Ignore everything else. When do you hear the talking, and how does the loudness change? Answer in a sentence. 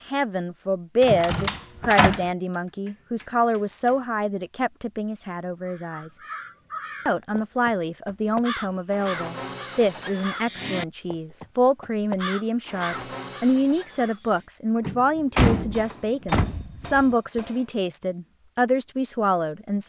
You can hear the talking from 0.0 to 6.2 s, getting quieter; and from 7.0 to 19.8 s, at a steady volume.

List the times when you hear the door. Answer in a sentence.
You can hear the door from 1.0 to 2.2 s and from 14.8 to 17.1 s.